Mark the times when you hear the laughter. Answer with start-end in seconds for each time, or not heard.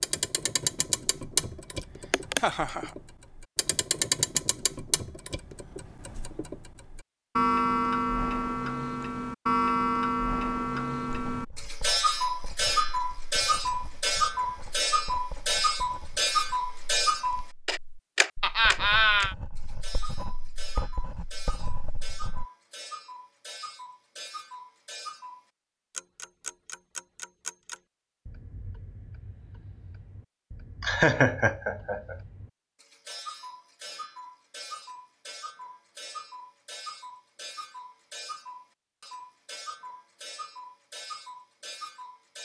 2.1-2.9, 18.4-19.4, 30.8-32.1.